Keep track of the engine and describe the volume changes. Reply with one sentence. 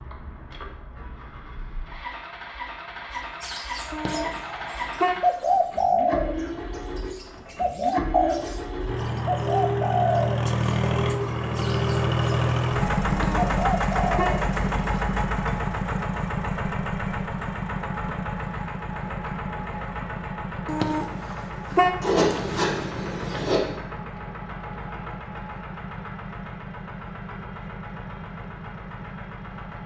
The loudness of the engine goes up, then down.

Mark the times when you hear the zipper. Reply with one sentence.
The zipper can be heard from 22.0 to 23.6 s.